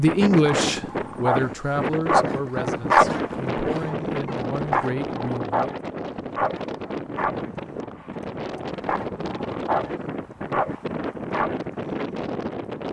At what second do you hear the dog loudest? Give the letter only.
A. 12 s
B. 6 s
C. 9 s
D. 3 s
D.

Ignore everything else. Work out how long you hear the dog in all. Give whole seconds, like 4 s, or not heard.
11 s.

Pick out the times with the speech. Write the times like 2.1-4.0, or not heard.
0.0-5.8.